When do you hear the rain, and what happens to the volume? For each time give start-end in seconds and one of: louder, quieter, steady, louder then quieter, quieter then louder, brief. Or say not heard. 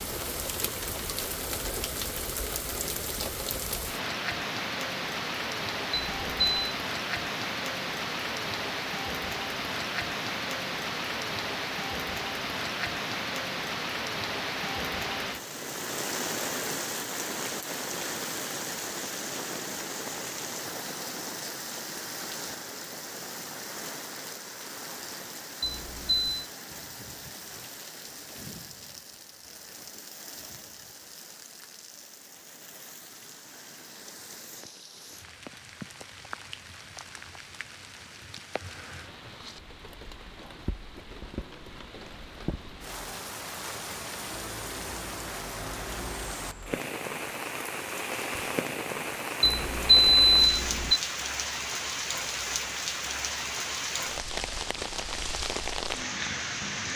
0.0-56.9 quieter then louder.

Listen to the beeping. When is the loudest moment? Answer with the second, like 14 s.
50 s.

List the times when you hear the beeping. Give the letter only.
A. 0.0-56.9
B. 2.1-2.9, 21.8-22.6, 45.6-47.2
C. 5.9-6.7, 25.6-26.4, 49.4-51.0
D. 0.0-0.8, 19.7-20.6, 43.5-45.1
C.